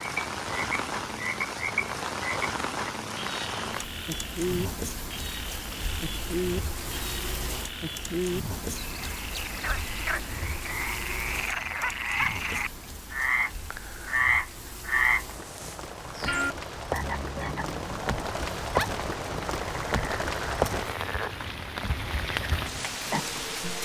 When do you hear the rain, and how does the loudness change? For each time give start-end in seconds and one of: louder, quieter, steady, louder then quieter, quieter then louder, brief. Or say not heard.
0.0-23.8 quieter then louder.